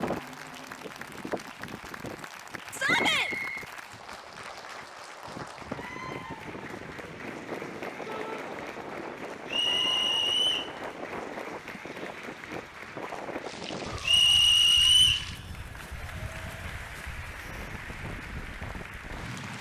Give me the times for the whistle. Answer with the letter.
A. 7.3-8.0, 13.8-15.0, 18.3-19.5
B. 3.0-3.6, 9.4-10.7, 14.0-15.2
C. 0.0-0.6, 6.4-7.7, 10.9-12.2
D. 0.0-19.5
B.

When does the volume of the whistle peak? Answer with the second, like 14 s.
15 s.